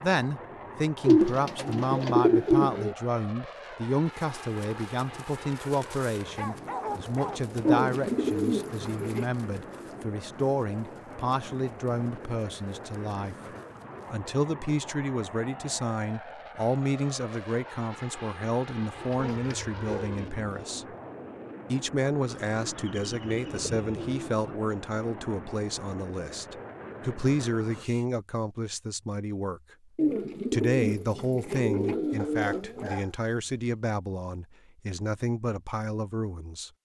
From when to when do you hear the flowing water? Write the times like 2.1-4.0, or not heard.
not heard.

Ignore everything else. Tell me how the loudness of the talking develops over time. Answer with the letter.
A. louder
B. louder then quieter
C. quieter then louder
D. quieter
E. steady
E.